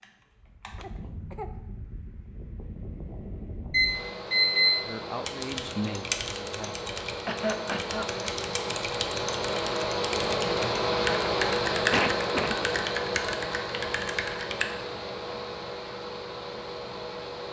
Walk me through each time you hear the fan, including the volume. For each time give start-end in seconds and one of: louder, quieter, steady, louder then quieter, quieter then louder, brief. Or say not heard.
0.0-17.4 louder then quieter.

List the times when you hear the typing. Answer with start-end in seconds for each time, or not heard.
5.2-14.8.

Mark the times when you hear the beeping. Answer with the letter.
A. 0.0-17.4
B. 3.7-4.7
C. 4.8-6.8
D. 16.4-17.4
B.